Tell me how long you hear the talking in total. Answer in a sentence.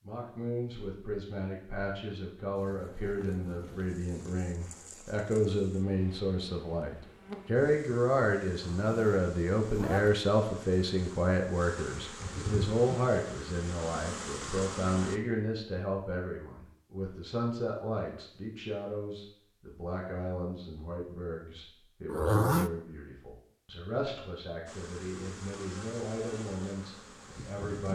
The talking can be heard for 28 seconds in total.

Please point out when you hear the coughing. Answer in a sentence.
The coughing can't be heard in this clip.